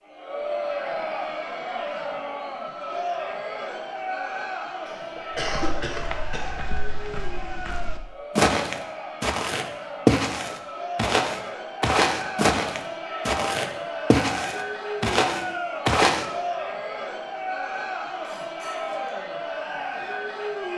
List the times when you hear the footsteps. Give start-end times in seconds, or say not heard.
5.3-16.2.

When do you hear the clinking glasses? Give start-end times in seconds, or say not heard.
not heard.